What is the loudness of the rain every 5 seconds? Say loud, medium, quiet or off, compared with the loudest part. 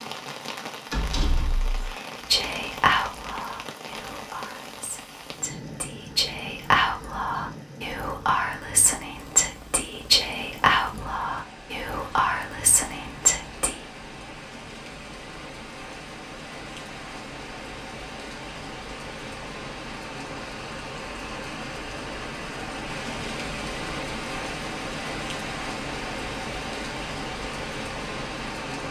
medium, medium, medium, medium, loud, loud.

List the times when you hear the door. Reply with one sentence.
The door can be heard from 0.9 to 1.8 s.